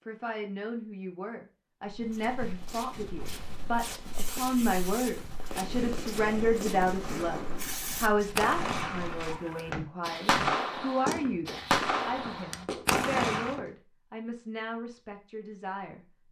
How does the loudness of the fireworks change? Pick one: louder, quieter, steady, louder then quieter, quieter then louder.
louder.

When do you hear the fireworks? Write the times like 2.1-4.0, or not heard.
3.1-13.6.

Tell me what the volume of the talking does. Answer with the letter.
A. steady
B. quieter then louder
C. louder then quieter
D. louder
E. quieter
C.